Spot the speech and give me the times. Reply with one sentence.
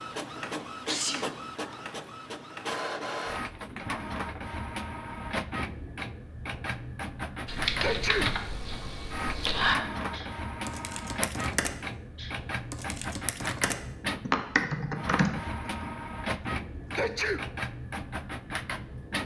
The speech can't be heard in this clip.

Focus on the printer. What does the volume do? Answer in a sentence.
The volume of the printer stays about the same.